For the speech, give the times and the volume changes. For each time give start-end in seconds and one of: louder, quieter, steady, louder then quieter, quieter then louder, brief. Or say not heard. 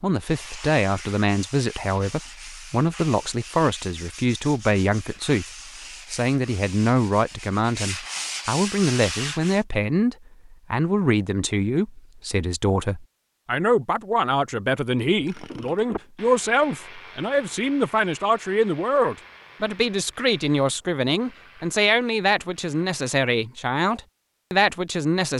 0.0-25.3 steady.